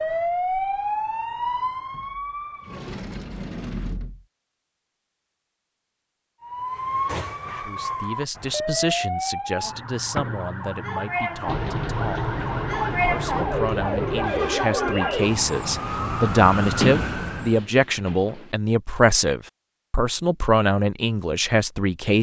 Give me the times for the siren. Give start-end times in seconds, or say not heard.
0.0-2.9, 6.4-17.6.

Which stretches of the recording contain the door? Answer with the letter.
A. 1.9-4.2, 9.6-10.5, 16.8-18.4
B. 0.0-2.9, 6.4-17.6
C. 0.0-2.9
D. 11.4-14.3
A.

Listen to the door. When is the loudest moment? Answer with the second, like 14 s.
17 s.